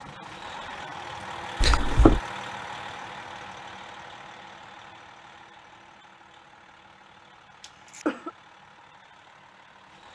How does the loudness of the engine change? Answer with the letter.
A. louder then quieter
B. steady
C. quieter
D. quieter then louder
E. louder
C.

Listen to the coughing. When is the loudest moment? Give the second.
2 s.